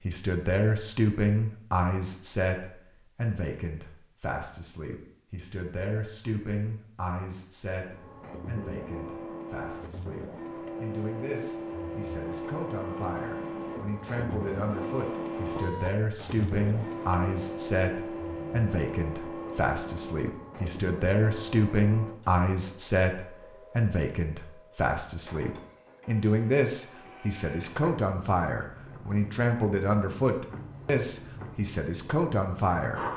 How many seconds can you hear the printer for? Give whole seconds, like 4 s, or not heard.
25 s.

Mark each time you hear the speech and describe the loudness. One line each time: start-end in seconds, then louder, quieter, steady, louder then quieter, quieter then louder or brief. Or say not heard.
0.1-33.0 quieter then louder.